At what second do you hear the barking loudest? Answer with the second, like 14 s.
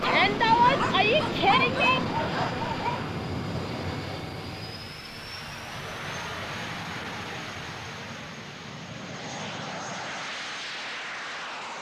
2 s.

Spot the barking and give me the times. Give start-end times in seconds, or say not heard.
0.0-3.1.